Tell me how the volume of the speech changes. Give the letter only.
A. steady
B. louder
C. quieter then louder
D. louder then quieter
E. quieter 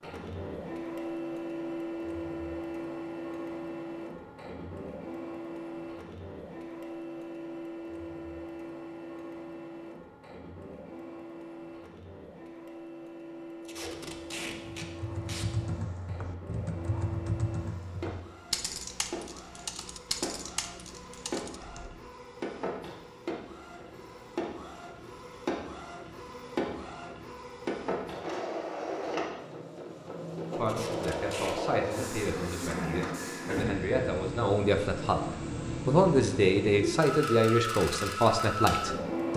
B.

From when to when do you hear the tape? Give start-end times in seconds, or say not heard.
13.7-15.4, 30.6-31.6.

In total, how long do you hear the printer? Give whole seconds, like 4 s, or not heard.
39 s.